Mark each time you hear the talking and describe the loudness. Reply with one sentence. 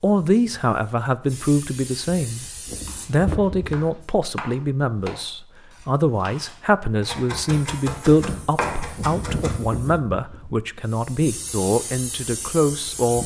You can hear the talking from 0.0 to 13.2 s, at a steady volume.